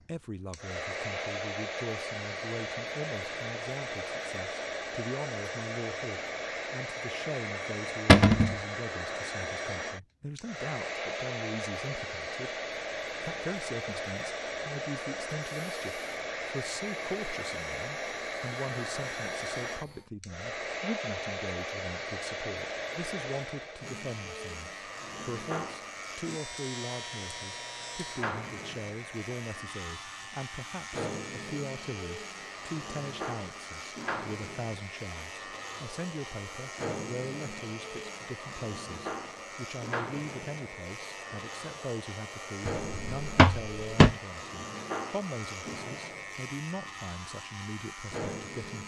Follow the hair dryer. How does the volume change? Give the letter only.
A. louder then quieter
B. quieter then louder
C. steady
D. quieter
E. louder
D.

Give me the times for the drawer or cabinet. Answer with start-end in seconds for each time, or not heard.
8.1-8.6, 42.9-44.1.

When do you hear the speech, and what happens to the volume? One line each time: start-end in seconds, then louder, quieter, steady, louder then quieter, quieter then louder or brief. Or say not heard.
0.0-48.8 steady.